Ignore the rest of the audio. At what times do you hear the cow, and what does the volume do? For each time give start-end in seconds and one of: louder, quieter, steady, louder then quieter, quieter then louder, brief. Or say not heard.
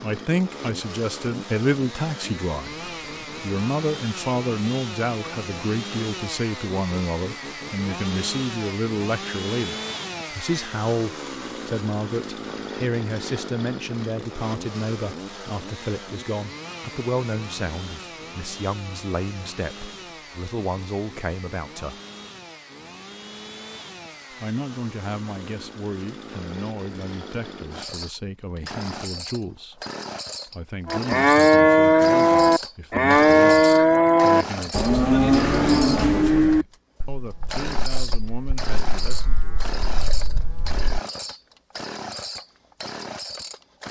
30.9-41.0 quieter then louder.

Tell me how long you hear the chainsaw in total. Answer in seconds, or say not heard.
44 s.